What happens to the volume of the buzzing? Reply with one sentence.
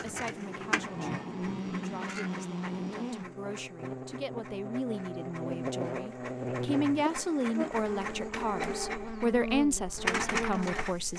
The volume of the buzzing stays about the same.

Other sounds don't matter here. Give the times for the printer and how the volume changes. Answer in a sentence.
The printer can be heard from 0.0 to 11.1 s, getting quieter then louder.